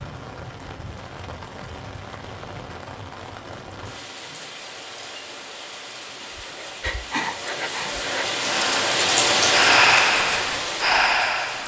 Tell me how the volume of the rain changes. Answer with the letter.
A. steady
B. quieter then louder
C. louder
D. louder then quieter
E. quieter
C.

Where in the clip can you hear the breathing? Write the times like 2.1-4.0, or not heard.
6.2-11.6.